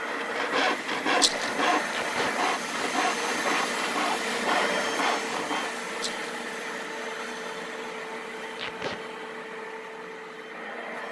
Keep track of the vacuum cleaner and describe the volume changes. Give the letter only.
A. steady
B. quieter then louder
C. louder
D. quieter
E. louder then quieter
D.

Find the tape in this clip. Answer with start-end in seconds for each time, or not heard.
1.9-2.4, 8.6-9.0.